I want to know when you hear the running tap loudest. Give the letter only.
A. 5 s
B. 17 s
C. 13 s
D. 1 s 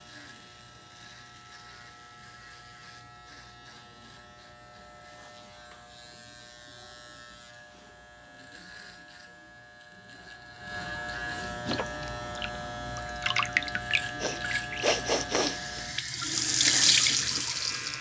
B.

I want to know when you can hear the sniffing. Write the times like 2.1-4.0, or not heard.
13.8-15.8.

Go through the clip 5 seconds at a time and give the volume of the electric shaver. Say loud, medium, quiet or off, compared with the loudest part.
quiet, quiet, loud, loud.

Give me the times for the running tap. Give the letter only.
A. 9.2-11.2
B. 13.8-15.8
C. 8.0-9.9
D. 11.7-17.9
D.